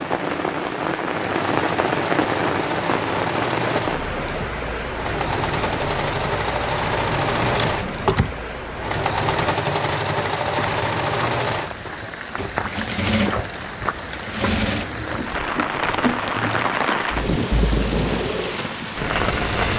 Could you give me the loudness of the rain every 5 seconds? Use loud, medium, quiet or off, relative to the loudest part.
loud, medium, medium, loud.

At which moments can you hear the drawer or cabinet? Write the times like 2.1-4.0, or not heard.
7.4-8.3.